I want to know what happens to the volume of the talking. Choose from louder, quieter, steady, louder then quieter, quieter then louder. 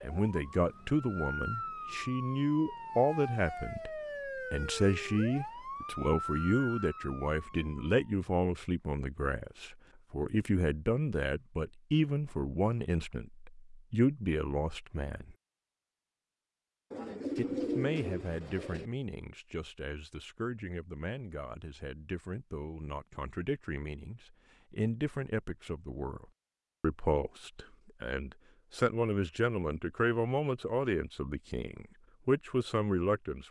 quieter then louder.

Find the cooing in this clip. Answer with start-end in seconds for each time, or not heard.
16.9-18.9.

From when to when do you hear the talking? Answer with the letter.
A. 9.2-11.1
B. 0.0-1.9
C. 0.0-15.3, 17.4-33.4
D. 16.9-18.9
C.